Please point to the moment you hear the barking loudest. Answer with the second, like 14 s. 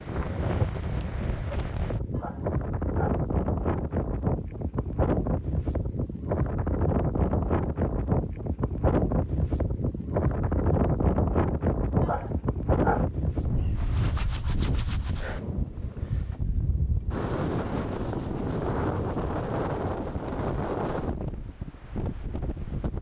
13 s.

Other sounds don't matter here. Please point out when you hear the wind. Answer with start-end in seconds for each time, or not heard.
0.0-22.9.